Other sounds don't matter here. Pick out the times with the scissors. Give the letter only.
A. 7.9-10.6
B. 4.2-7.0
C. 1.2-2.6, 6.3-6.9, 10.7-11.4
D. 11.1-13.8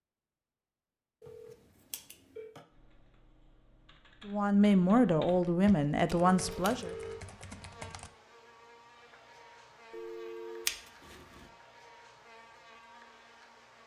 C.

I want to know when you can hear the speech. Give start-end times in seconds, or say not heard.
4.2-7.0.